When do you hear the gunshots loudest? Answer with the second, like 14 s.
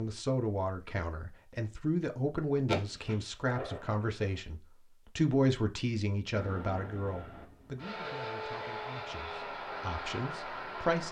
3 s.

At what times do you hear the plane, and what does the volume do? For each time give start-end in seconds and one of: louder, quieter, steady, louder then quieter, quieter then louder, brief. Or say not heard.
6.3-11.0 louder.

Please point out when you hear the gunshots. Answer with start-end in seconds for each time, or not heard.
2.6-4.2.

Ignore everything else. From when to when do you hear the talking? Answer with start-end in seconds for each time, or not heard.
0.0-11.0.